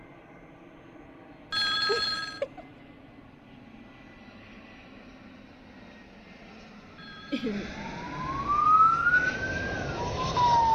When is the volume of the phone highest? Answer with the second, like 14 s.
2 s.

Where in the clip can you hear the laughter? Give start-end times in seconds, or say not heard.
1.9-2.6, 7.3-7.7.